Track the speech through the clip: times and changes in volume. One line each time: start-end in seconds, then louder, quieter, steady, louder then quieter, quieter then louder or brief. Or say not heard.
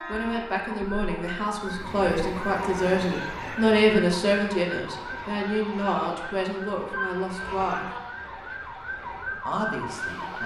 0.1-7.9 louder then quieter
9.4-10.4 brief.